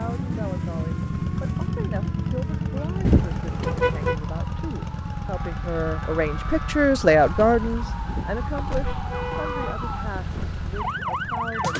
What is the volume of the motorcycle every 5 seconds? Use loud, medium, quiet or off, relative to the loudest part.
loud, medium, medium.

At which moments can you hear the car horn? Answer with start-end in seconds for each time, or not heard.
3.0-4.2, 8.1-9.8.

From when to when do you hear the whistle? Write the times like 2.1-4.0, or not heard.
not heard.